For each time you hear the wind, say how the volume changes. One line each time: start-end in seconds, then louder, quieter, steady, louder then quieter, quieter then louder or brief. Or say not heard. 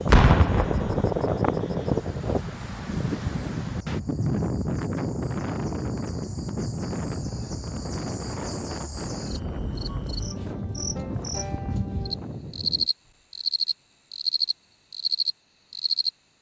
0.0-12.9 quieter.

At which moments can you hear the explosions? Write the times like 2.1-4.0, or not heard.
0.1-1.2.